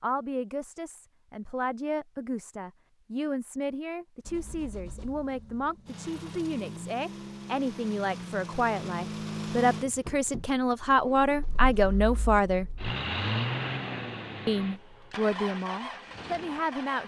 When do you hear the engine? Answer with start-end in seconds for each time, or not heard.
4.2-17.0.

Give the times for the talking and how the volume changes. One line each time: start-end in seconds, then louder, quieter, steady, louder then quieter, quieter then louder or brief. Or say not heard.
0.0-12.7 louder
14.4-17.0 brief.